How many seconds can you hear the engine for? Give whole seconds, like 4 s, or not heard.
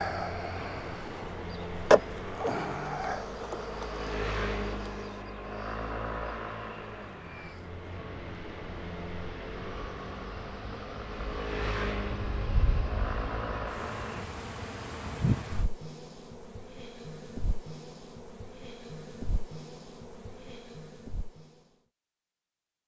14 s.